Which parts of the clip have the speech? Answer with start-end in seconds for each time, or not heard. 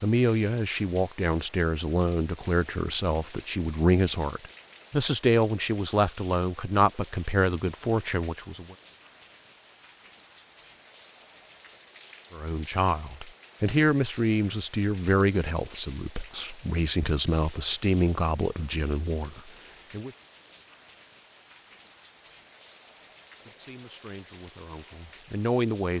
0.0-8.8, 12.3-20.1, 23.4-25.9.